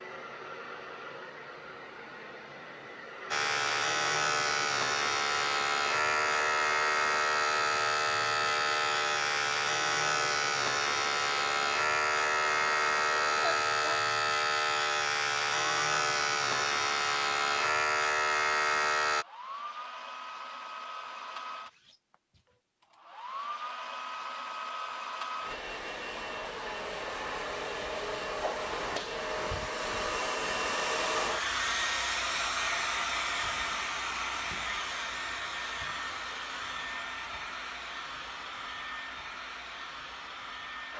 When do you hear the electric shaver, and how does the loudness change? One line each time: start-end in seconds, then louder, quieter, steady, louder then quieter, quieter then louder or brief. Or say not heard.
3.3-19.2 steady.